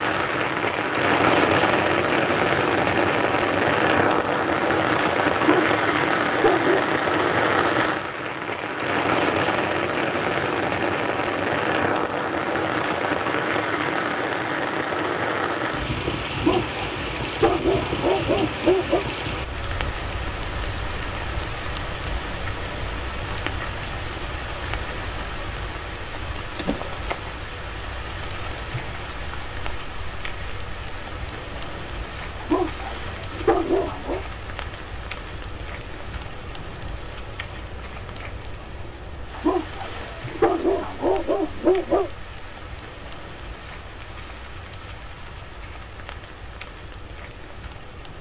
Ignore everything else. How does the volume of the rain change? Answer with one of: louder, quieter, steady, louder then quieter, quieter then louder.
quieter.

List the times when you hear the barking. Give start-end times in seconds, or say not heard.
5.3-6.9, 16.4-19.1, 32.4-34.2, 39.4-42.1.